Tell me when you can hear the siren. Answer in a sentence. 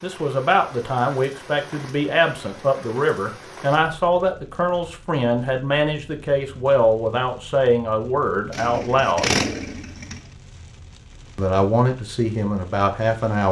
You can't hear the siren here.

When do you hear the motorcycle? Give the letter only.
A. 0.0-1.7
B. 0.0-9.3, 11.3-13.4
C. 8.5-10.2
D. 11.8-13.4
C.